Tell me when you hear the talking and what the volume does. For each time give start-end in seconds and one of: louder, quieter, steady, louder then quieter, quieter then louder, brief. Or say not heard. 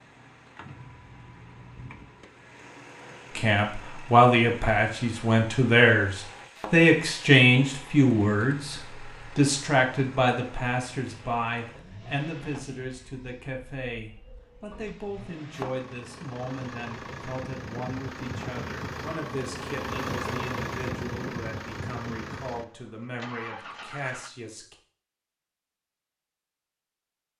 3.4-24.8 quieter.